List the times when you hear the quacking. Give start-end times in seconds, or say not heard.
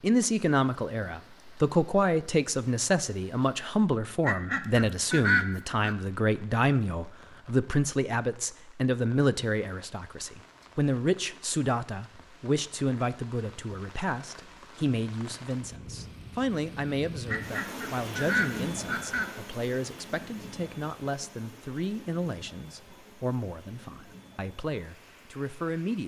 4.2-6.0, 17.2-19.3.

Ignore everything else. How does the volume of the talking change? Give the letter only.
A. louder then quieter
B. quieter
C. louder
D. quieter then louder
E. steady
B.